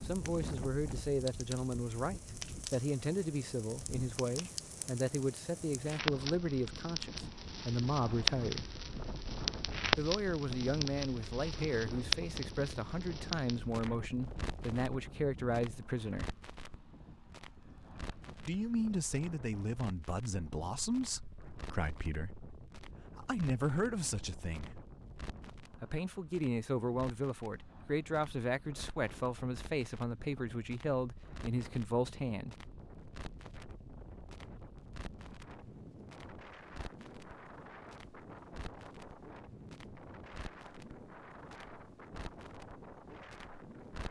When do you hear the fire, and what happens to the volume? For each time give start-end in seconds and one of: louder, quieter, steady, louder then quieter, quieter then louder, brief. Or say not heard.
0.0-44.0 quieter.